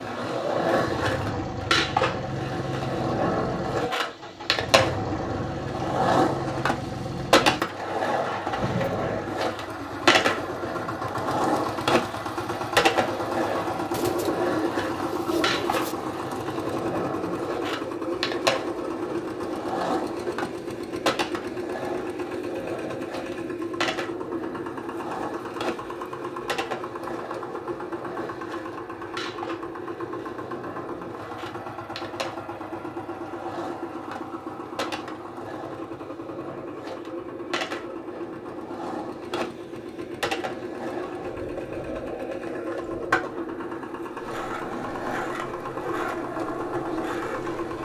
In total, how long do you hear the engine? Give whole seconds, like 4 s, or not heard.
48 s.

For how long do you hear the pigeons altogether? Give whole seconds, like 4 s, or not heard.
2 s.